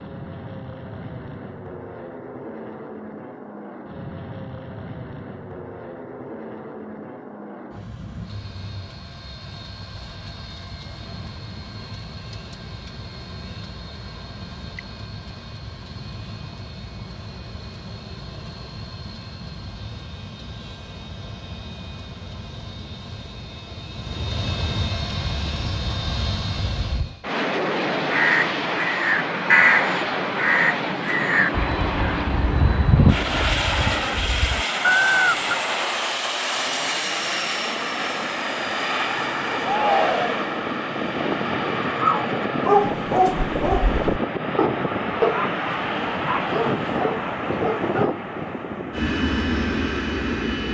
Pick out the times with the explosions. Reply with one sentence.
You can't hear the explosions here.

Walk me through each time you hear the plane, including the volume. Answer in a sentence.
You can hear the plane from 0.0 to 50.6 s, getting louder.